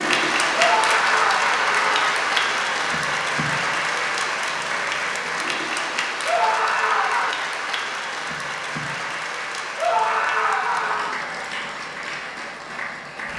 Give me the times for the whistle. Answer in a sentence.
The whistle can't be heard in this clip.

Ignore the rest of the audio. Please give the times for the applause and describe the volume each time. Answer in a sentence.
You can hear the applause from 0.0 to 13.3 s, getting quieter.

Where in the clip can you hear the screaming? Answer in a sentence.
The screaming can be heard from 0.6 to 2.2 s, from 6.2 to 7.3 s and from 9.8 to 11.2 s.